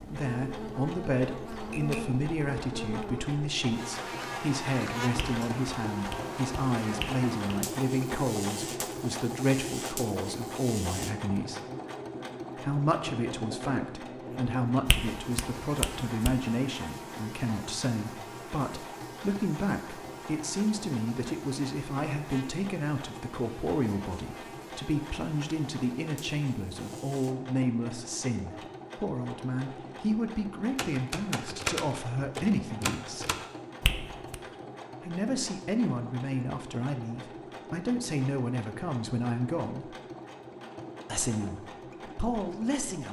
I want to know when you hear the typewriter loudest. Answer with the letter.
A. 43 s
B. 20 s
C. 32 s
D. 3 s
C.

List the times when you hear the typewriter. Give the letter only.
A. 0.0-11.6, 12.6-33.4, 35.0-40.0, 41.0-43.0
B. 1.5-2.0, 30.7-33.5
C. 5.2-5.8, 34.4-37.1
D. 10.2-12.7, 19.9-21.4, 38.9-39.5
B.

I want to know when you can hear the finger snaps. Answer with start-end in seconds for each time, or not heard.
5.2-7.5, 14.8-16.4, 33.8-34.4.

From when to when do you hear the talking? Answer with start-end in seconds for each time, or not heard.
0.0-11.6, 12.6-33.4, 35.0-40.0, 41.0-43.0.